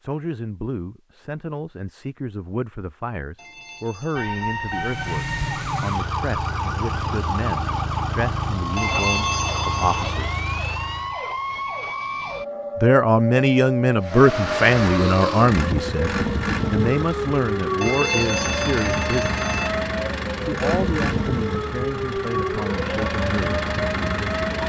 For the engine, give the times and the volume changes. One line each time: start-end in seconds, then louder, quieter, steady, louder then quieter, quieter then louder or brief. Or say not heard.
4.7-11.2 steady
14.0-24.6 steady.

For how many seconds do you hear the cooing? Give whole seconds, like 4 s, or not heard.
not heard.